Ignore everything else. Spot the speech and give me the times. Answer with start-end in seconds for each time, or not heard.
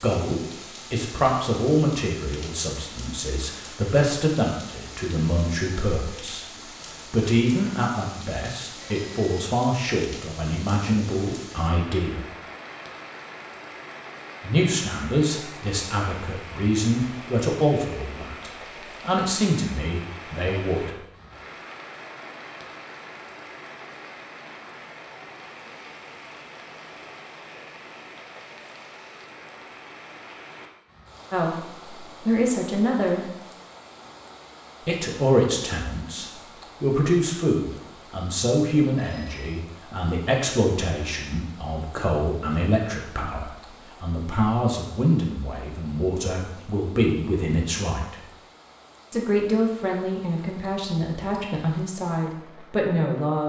0.0-12.2, 14.4-20.9, 31.3-33.2, 34.8-48.2, 49.1-53.4.